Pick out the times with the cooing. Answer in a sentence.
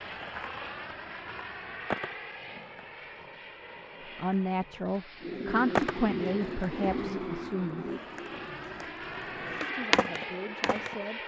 The cooing can be heard from 5.2 to 10.7 s.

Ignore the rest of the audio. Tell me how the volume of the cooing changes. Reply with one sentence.
The loudness of the cooing goes down.